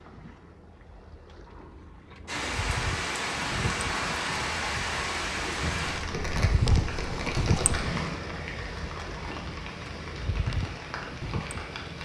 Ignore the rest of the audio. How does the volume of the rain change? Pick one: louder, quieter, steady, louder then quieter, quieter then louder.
quieter.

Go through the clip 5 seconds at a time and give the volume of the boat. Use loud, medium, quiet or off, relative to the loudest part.
medium, loud, loud.